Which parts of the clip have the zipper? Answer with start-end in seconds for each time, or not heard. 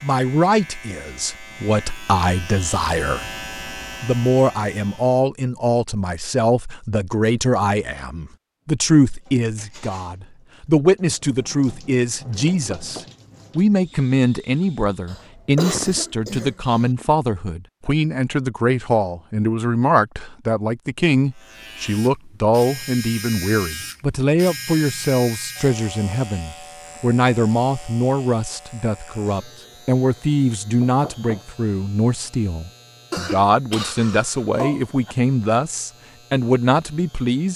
not heard.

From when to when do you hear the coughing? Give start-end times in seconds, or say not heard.
15.1-16.9, 33.1-35.1.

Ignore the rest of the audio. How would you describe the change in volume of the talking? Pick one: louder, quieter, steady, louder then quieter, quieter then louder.
steady.